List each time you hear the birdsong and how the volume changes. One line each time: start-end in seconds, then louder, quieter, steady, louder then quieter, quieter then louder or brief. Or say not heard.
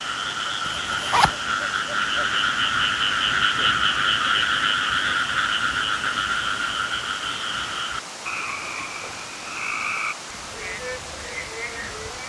not heard.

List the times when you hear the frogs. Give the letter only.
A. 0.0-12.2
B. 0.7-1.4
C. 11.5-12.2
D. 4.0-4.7
A.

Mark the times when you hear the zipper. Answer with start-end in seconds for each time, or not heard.
0.7-1.4.